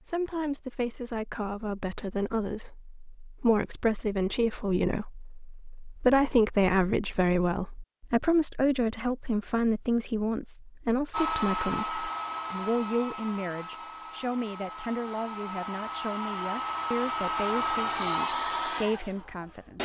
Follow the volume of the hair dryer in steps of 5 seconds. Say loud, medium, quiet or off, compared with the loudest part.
off, off, loud, loud.